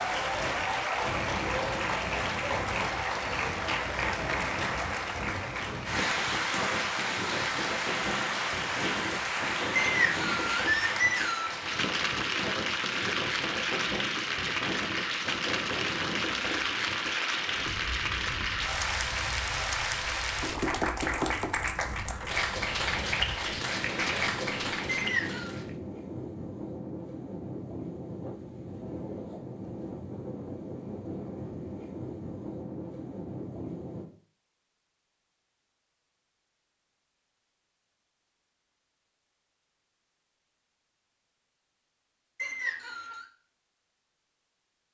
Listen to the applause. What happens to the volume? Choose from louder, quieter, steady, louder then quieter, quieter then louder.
steady.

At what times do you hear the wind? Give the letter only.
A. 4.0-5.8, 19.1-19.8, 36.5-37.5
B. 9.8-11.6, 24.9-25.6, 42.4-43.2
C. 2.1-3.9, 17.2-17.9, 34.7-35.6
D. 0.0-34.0
D.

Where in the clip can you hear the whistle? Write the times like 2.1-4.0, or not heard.
9.8-11.6, 24.9-25.6, 42.4-43.2.